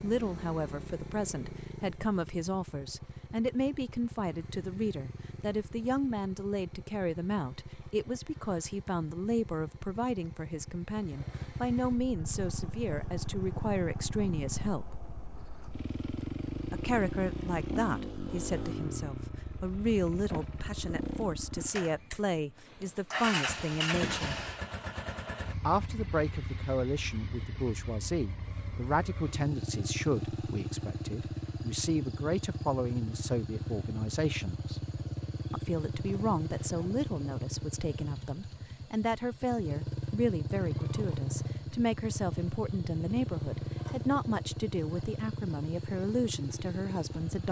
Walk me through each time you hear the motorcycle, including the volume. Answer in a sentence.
You can hear the motorcycle from 0.0 to 47.4 s, getting louder.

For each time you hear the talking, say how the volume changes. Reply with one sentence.
You can hear the talking from 0.0 to 15.0 s, at a steady volume; from 16.7 to 24.4 s, at a steady volume; from 25.6 to 34.8 s, at a steady volume; and from 35.5 to 47.4 s, at a steady volume.